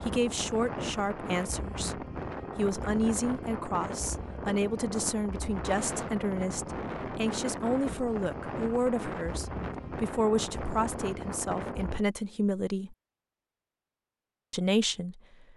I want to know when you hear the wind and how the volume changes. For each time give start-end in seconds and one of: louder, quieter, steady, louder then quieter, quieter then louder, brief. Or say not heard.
0.0-12.1 steady.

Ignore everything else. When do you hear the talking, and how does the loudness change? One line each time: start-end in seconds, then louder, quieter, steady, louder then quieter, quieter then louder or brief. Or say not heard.
0.1-12.9 steady
14.5-15.4 brief.